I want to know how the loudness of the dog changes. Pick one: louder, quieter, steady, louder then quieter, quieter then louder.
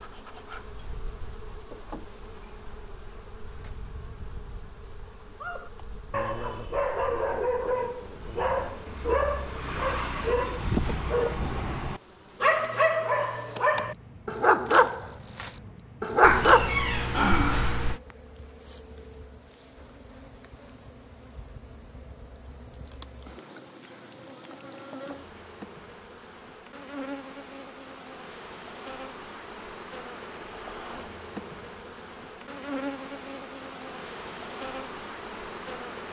louder.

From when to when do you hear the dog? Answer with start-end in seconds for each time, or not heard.
5.4-16.8.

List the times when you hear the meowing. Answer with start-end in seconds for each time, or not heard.
16.2-18.0.